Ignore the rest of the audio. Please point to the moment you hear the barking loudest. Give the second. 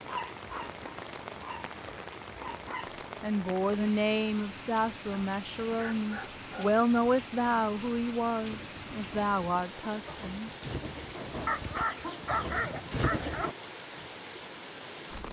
12 s.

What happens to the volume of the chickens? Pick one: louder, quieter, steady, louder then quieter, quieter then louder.
louder.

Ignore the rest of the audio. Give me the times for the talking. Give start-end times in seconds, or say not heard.
3.2-10.5.